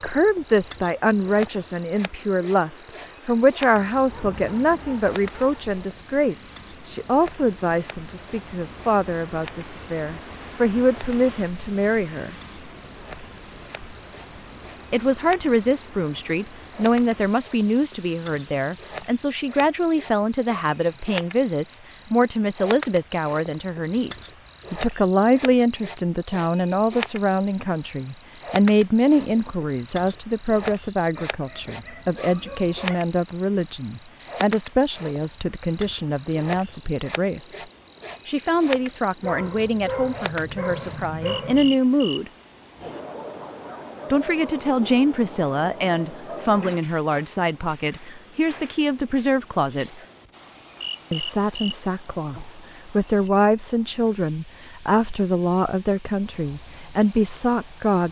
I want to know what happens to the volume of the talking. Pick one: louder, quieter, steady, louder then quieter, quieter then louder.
steady.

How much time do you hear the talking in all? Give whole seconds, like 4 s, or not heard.
52 s.